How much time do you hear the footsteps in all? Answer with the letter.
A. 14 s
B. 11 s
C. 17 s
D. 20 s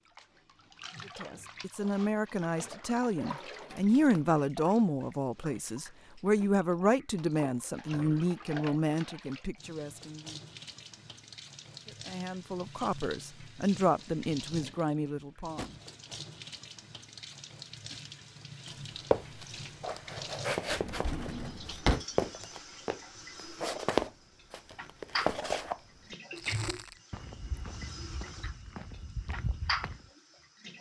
B.